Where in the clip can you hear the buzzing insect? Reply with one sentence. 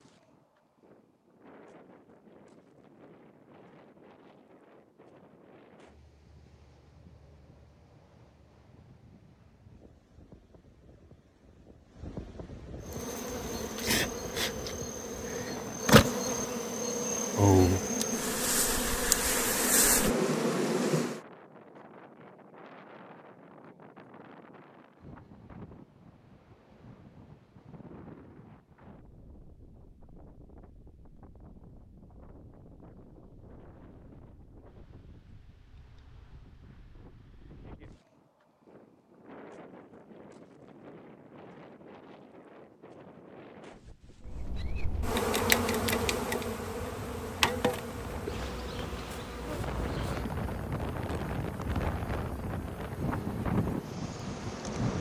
The buzzing insect can be heard from 12.8 to 21.2 s and from 44.2 to 54.9 s.